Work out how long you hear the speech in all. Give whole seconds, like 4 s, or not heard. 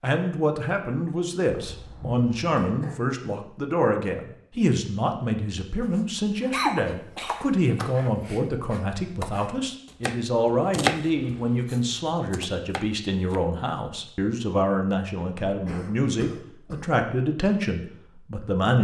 19 s.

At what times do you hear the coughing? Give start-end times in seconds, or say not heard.
1.4-3.2, 6.5-8.4, 15.4-16.9.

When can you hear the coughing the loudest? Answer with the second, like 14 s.
7 s.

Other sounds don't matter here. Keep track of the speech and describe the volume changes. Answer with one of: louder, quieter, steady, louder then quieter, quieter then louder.
steady.